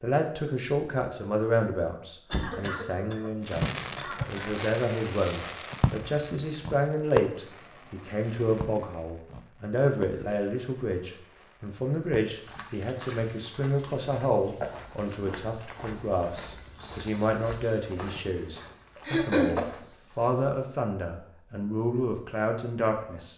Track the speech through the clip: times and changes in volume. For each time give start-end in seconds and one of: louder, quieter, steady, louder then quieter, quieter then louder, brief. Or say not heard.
0.0-23.3 steady.